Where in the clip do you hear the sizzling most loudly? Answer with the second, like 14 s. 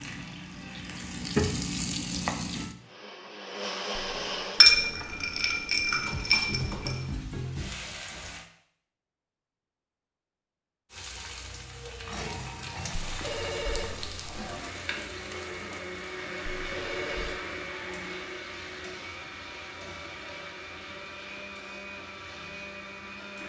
2 s.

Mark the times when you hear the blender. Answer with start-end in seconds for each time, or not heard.
2.8-4.7, 13.2-23.4.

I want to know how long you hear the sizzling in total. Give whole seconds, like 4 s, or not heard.
18 s.